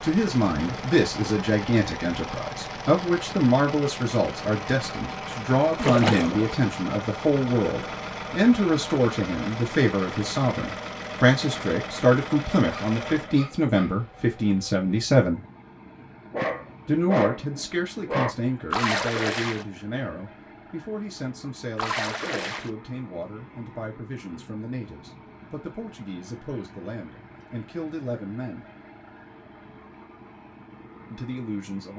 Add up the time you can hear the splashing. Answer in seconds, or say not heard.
3 s.